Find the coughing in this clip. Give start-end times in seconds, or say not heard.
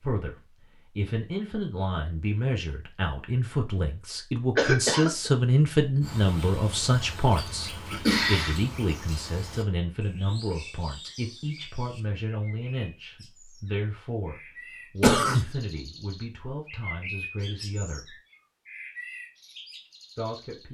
4.5-5.3, 7.3-8.6, 15.0-15.4.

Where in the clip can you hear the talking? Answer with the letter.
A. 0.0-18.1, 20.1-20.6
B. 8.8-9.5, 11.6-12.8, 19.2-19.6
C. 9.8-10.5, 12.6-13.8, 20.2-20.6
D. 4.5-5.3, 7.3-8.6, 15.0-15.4
A.